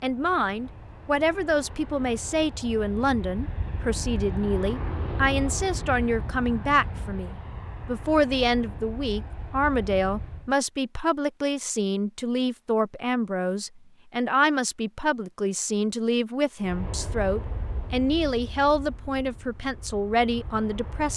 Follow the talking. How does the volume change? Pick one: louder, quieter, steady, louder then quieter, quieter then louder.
steady.